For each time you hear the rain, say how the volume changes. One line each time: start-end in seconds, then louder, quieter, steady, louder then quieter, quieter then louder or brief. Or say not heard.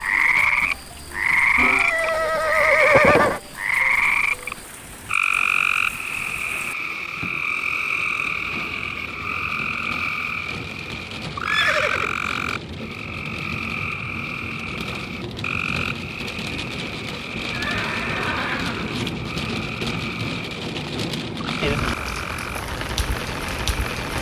0.0-24.1 louder.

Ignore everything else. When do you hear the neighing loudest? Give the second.
3 s.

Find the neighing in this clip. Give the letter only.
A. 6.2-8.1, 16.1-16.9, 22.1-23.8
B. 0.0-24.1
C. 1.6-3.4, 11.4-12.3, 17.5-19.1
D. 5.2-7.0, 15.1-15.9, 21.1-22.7
C.